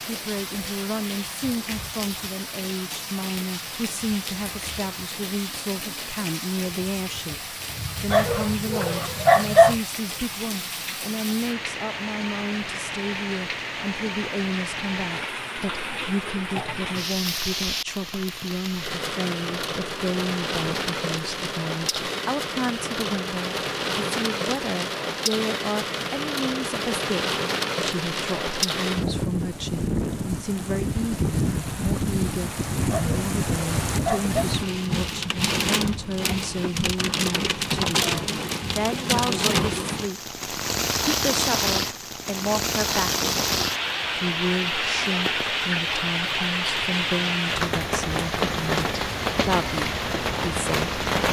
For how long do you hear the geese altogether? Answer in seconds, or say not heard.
not heard.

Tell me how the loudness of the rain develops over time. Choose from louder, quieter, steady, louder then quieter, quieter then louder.
louder.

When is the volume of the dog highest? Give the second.
9 s.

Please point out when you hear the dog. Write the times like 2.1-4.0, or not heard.
8.1-9.8, 32.9-34.5.